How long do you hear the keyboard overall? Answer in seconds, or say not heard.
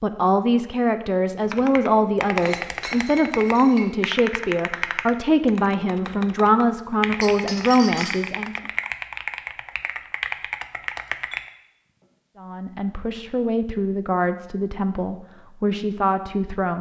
10 s.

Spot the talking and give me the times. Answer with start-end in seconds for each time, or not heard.
0.0-8.6, 12.3-16.7.